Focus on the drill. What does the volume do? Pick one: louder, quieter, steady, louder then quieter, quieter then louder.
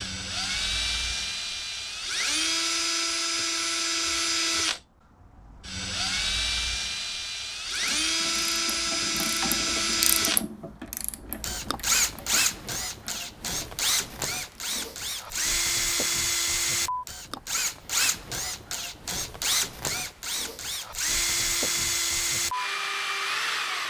steady.